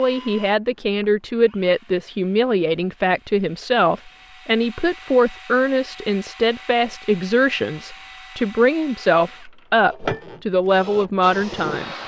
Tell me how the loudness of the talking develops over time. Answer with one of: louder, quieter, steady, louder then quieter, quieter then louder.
steady.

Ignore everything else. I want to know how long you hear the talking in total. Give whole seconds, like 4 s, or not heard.
12 s.